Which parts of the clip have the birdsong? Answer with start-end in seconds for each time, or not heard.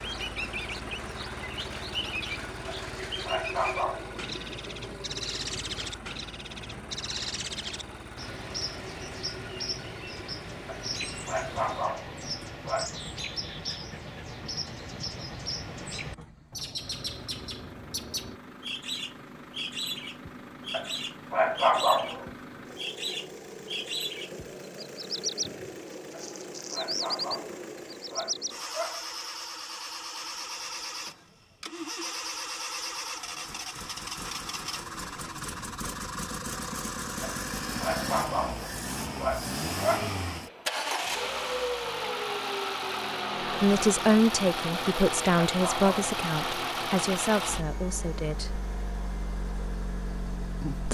0.0-28.6.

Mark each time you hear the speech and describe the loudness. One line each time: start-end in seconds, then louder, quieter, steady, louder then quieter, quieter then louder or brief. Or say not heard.
43.4-48.6 quieter.